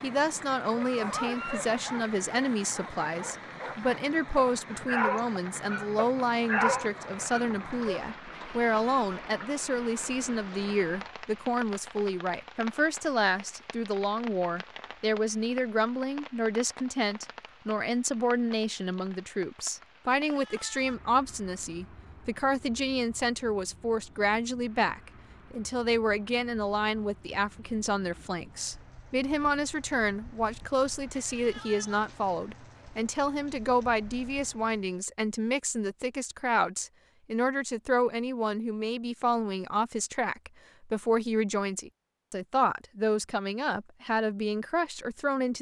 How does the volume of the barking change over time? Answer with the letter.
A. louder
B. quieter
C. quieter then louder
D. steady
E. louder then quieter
C.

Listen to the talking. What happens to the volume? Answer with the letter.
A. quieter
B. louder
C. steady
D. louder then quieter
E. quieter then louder
C.